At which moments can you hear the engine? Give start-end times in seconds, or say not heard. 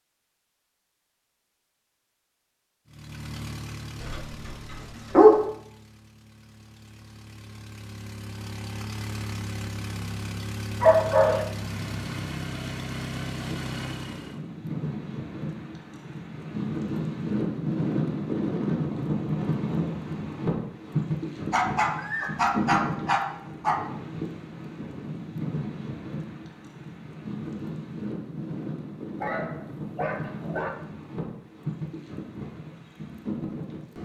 2.9-14.4.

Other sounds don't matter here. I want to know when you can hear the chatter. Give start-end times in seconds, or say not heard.
not heard.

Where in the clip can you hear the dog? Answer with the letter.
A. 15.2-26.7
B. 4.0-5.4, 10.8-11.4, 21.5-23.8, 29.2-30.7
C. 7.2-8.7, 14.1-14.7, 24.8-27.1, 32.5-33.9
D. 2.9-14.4
B.